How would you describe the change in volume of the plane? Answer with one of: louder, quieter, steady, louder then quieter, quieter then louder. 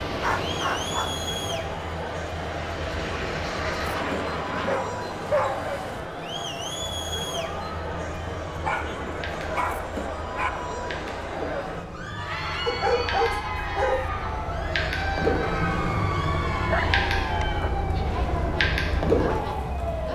quieter then louder.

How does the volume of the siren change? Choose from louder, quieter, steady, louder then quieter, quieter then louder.
louder.